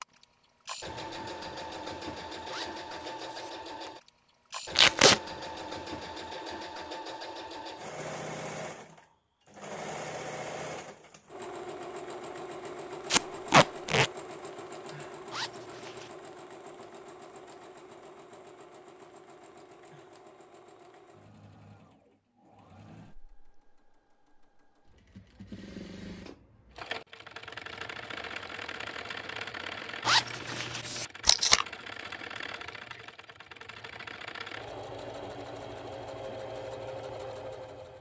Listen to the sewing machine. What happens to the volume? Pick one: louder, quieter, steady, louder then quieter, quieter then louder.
quieter then louder.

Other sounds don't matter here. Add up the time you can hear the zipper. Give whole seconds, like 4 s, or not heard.
3 s.